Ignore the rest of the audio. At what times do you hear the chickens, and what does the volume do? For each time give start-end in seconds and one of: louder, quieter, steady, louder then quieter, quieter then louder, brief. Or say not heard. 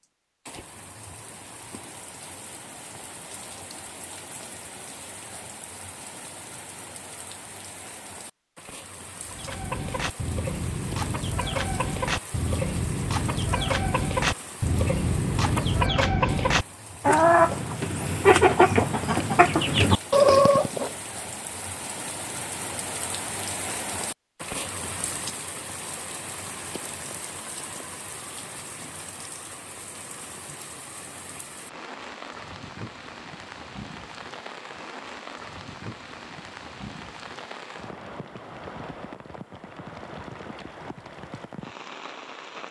9.2-20.9 louder.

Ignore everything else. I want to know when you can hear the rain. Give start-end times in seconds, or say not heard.
0.0-42.6.